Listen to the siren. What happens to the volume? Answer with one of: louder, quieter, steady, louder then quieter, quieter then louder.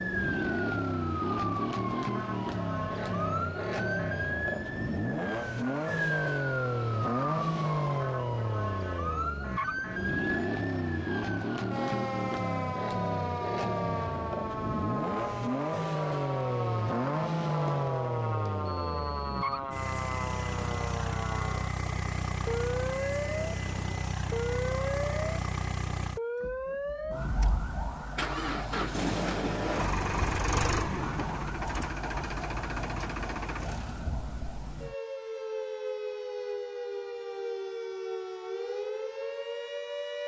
steady.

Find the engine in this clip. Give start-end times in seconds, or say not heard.
0.0-34.1.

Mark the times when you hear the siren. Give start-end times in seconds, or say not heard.
0.0-40.2.